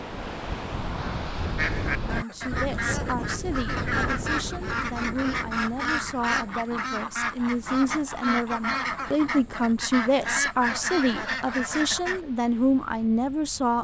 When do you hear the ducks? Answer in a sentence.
You can hear the ducks from 1.6 to 12.2 s.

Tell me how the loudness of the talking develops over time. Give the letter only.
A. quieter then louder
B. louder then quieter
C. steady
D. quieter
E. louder
E.